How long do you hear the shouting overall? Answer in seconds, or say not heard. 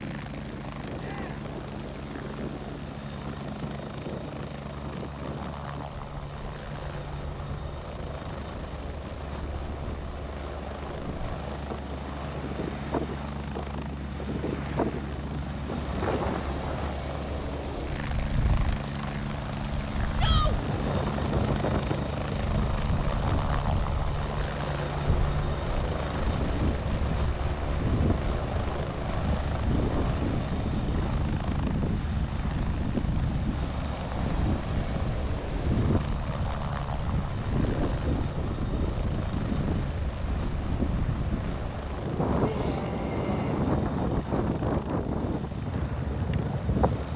2 s.